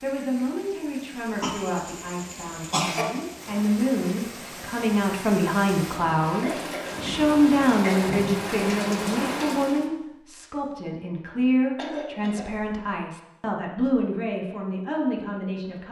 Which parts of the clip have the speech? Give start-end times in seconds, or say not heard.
0.0-15.8.